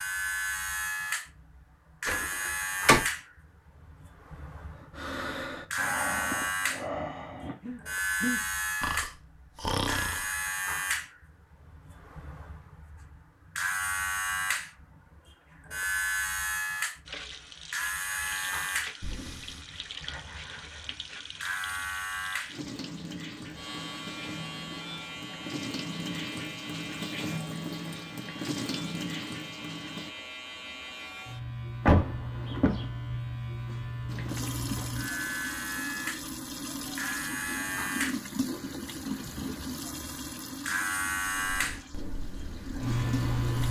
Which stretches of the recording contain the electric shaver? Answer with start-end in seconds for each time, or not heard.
0.0-43.6.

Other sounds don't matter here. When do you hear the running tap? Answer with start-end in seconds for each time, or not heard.
17.1-30.1, 34.0-43.6.